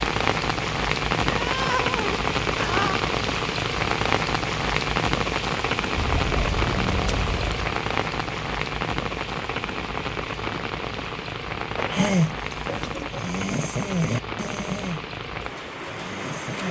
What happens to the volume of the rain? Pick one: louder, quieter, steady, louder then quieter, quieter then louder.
quieter.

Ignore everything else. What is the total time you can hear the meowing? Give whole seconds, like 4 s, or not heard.
5 s.